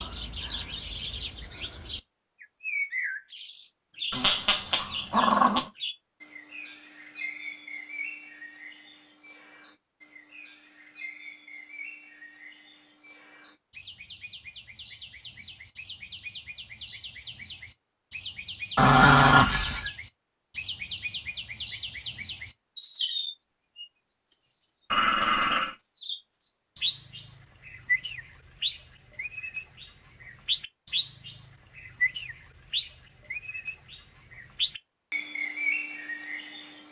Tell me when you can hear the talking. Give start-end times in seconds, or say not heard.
not heard.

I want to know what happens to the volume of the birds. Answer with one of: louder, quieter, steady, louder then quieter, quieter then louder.
quieter then louder.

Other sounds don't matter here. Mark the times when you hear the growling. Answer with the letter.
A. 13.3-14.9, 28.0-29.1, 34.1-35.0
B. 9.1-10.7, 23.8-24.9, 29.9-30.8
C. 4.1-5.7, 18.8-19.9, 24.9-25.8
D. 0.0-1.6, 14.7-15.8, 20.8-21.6
C.